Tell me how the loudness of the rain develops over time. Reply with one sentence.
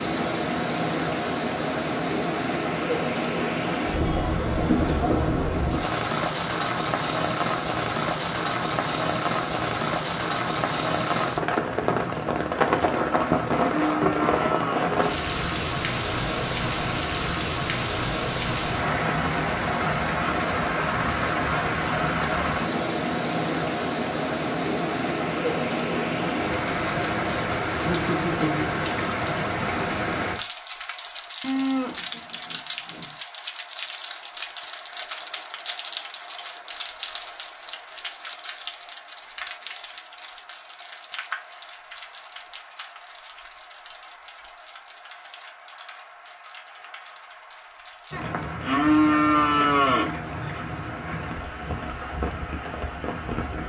The loudness of the rain goes down.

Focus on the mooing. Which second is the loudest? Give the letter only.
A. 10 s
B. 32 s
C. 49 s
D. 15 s
C.